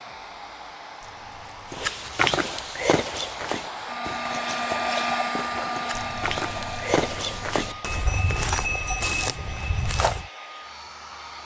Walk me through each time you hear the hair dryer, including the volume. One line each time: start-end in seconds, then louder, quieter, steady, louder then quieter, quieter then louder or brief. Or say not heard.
0.0-11.4 louder then quieter.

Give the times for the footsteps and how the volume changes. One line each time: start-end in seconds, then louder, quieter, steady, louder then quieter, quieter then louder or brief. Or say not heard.
1.7-10.2 quieter then louder.